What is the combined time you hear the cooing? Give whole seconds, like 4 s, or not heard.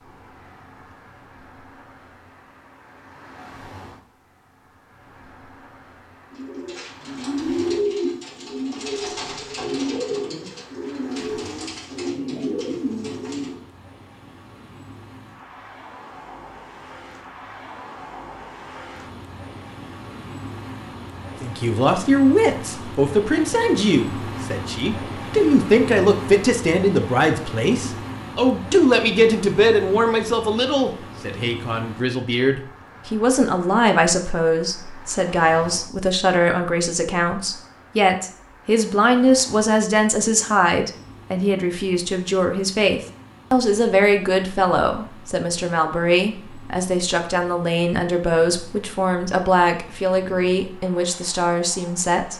7 s.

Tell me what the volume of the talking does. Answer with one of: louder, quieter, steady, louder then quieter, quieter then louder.
steady.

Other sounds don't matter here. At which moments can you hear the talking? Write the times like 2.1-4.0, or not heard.
21.4-52.3.